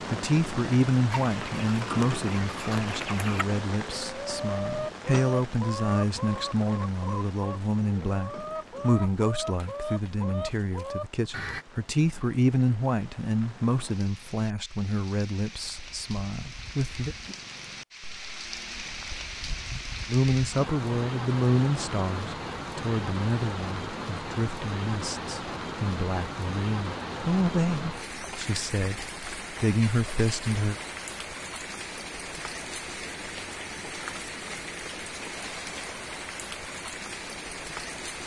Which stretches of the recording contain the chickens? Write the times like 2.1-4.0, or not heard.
1.1-11.7.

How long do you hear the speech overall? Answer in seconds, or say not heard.
28 s.